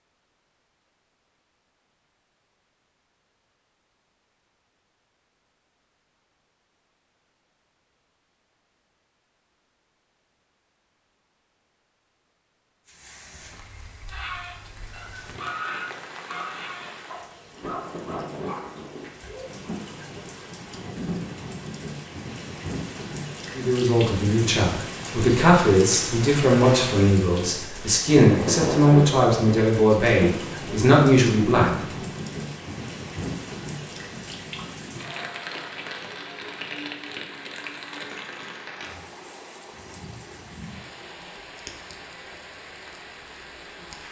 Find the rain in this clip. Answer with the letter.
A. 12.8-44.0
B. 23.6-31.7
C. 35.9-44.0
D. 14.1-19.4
A.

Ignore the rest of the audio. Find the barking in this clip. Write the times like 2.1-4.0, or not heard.
14.1-19.4.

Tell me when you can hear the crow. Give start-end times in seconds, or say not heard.
not heard.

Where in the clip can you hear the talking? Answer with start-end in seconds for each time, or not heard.
23.6-31.7.